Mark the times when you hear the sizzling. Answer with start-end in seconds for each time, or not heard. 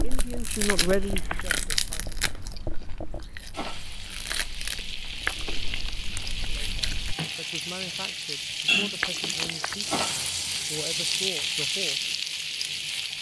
3.5-13.1.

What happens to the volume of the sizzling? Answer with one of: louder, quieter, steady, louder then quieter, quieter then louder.
louder.